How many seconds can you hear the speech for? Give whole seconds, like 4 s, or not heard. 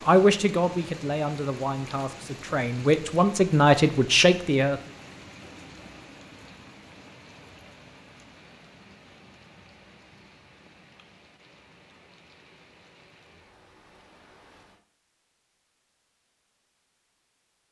5 s.